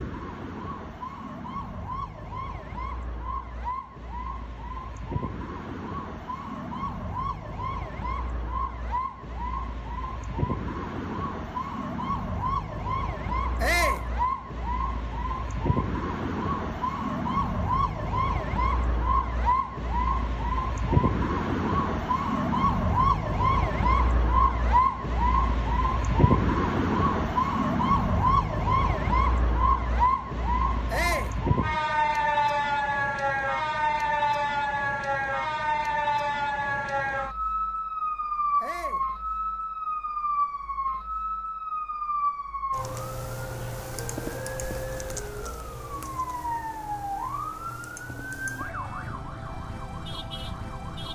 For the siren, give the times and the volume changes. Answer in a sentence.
You can hear the siren from 0.0 to 51.1 s, getting louder then quieter.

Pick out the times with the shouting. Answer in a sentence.
You can hear the shouting from 13.6 to 14.1 s, from 30.9 to 31.4 s and from 38.6 to 39.0 s.